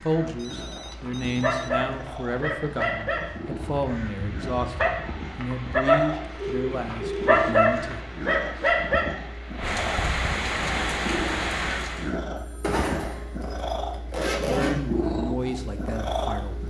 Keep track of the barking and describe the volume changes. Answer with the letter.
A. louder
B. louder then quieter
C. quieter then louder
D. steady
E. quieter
A.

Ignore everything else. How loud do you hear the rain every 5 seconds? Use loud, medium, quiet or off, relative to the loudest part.
quiet, medium, loud, off.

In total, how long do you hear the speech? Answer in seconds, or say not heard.
10 s.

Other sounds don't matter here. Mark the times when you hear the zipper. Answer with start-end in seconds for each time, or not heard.
12.6-14.8.